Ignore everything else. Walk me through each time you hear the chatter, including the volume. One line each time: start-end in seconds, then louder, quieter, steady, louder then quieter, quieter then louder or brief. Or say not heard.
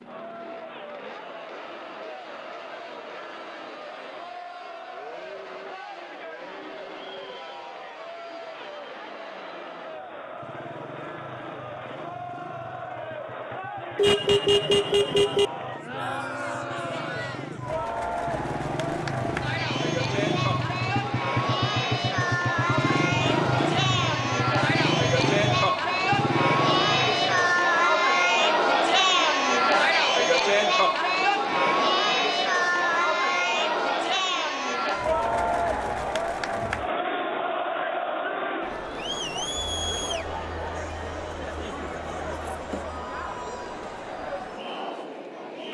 0.0-45.7 louder then quieter.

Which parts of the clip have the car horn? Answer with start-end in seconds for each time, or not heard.
13.9-15.5.